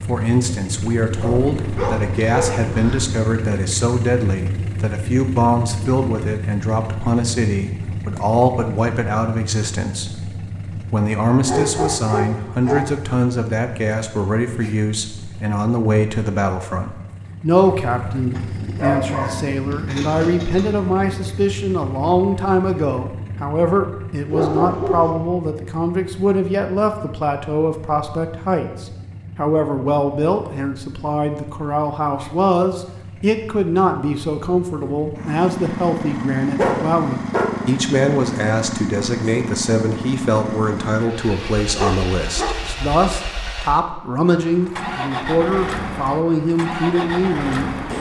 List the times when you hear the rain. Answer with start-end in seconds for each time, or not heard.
not heard.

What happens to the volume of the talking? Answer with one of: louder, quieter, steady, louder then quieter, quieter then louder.
steady.